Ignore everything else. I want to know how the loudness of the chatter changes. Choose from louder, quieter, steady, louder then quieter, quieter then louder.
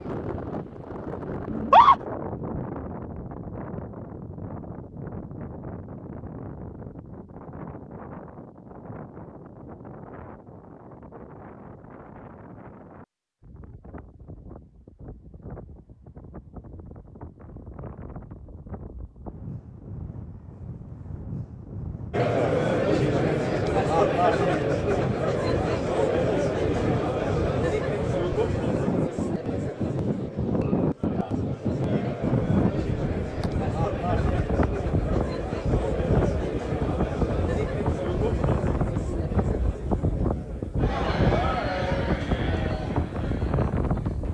quieter.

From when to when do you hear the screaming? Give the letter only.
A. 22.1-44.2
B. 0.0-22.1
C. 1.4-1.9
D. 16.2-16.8
C.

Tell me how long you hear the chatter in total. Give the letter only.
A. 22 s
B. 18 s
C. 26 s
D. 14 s
A.